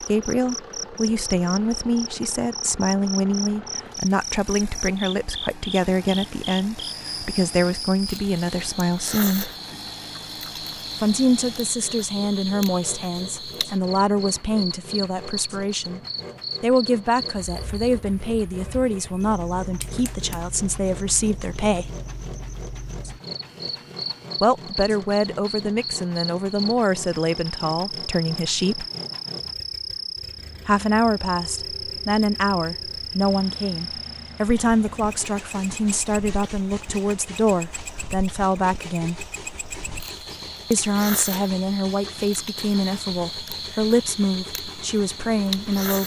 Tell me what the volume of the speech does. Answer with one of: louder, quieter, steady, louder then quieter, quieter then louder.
steady.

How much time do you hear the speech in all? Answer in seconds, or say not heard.
38 s.